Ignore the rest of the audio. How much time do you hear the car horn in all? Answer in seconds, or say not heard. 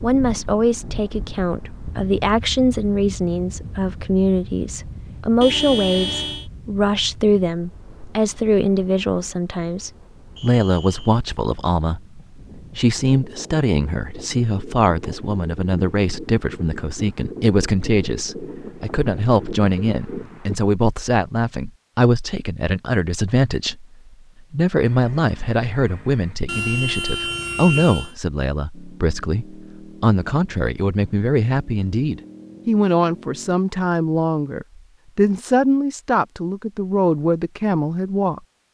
3 s.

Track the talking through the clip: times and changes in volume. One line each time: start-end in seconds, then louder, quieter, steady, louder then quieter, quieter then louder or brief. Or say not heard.
0.0-23.9 steady
24.5-38.4 steady.